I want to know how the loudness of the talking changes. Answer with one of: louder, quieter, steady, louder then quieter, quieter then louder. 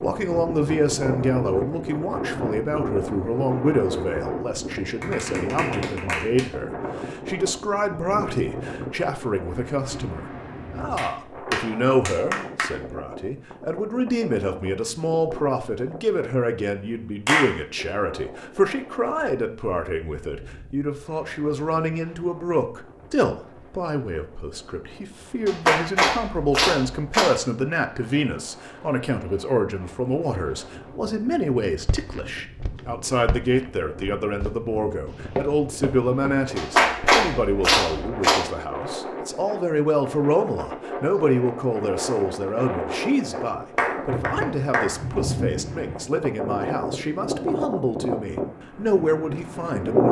steady.